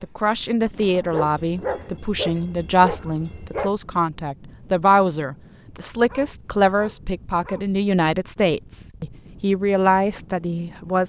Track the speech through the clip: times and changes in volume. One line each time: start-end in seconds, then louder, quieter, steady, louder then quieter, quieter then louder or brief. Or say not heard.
0.0-11.0 steady.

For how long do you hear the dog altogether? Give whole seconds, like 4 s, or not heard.
4 s.